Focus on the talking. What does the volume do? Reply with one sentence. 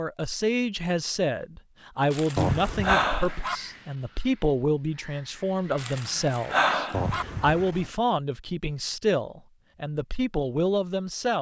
The loudness of the talking stays about the same.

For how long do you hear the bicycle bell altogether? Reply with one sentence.
The bicycle bell can be heard for 2 seconds in total.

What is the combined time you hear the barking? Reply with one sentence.
The barking can be heard for 3 seconds in total.